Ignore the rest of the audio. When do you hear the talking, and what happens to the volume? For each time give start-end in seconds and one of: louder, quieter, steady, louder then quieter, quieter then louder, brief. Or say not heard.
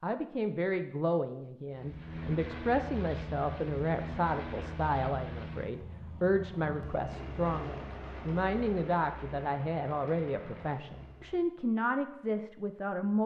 0.0-13.2 steady.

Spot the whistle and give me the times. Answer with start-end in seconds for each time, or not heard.
not heard.